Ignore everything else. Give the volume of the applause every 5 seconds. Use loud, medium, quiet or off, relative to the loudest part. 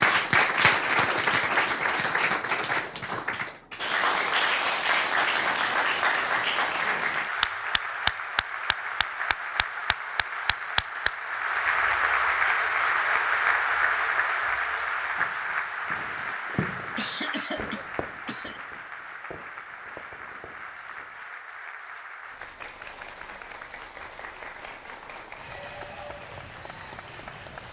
loud, loud, loud, medium, quiet, quiet.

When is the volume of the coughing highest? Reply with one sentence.
The volume of the coughing peaks at 17 seconds.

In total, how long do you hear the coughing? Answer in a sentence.
You can hear the coughing for 2 seconds altogether.